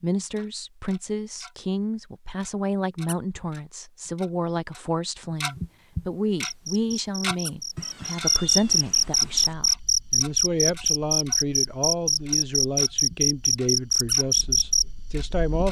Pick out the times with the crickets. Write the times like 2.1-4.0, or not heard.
6.5-15.6.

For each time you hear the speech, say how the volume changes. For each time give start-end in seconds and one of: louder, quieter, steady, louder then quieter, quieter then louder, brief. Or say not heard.
0.0-15.6 steady.